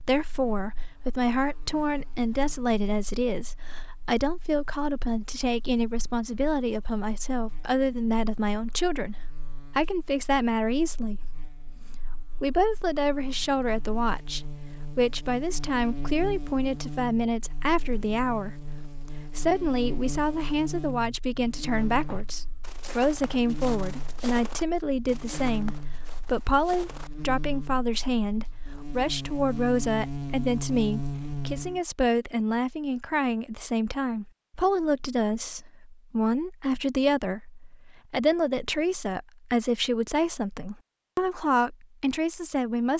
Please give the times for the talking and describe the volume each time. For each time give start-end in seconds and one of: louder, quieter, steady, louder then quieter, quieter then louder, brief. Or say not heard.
0.0-9.2 steady
9.8-42.9 steady.